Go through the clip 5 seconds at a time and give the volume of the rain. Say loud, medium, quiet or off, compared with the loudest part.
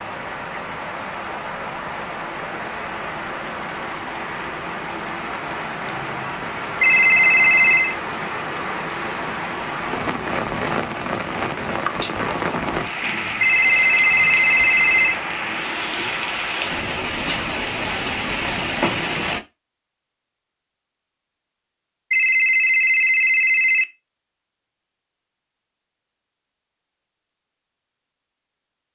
medium, loud, loud, loud, off, off.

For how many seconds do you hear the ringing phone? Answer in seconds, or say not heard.
5 s.